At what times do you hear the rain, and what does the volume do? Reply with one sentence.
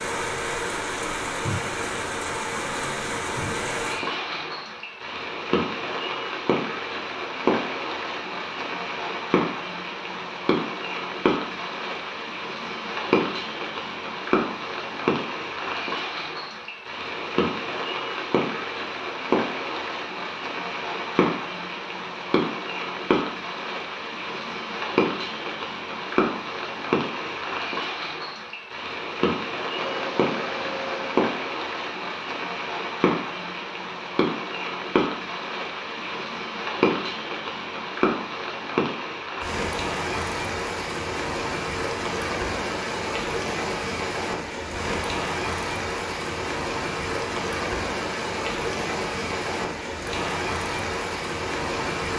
The rain can be heard from 0.0 to 52.1 s, at a steady volume.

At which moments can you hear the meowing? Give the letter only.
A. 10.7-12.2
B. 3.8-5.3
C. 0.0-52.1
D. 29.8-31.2
D.